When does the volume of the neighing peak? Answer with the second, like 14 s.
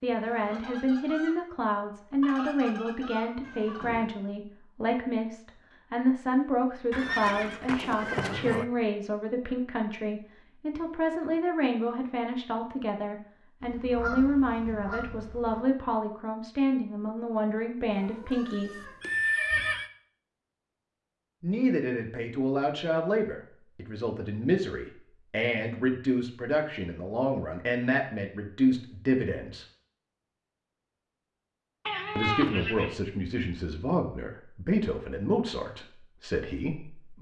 19 s.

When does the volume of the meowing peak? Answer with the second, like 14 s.
32 s.